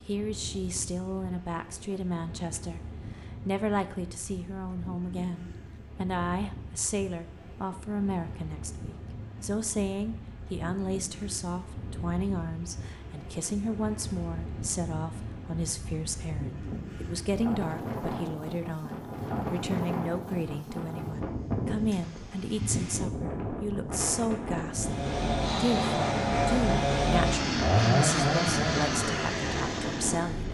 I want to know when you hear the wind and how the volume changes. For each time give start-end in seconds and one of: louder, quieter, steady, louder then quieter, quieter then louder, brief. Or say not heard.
0.0-30.4 louder.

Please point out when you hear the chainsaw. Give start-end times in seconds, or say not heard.
24.6-30.4.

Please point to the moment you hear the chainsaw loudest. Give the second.
28 s.